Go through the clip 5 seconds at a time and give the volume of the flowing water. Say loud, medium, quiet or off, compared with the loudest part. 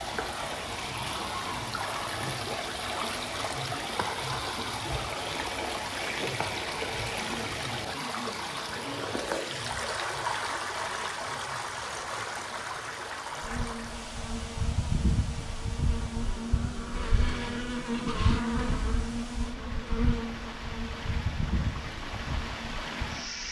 loud, loud, loud, quiet, medium.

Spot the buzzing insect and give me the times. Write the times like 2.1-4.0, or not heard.
13.4-23.4.